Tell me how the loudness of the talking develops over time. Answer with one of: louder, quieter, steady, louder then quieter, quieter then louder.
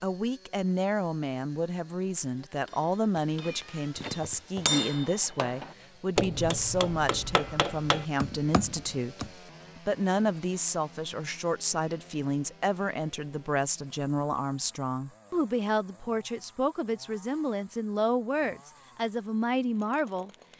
steady.